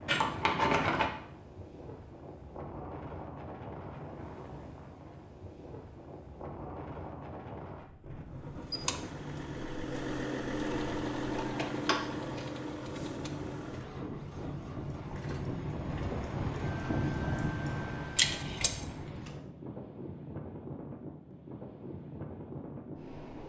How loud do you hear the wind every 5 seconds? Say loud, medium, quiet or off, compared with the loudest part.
medium, medium, medium, loud, medium.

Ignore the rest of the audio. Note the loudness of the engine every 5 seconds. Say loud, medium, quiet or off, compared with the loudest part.
off, loud, loud, medium, off.